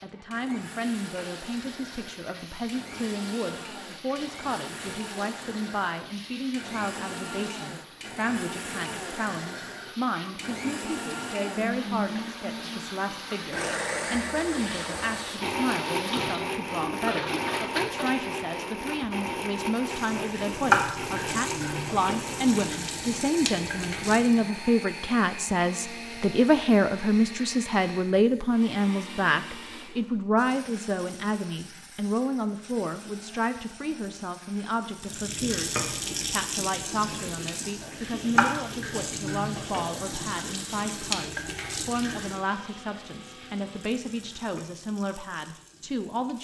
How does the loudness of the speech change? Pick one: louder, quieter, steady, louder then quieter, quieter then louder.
louder then quieter.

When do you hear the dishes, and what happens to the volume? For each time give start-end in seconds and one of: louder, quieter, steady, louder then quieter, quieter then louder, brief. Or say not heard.
not heard.